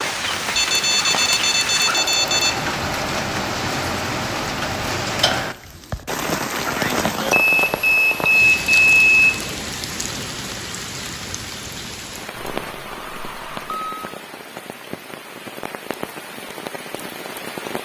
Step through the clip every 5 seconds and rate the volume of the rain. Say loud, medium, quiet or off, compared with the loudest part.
loud, loud, medium, medium.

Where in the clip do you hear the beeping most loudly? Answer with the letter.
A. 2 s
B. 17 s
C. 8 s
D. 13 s
C.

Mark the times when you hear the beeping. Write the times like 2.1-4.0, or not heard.
0.6-2.5, 7.3-9.3, 12.3-14.1.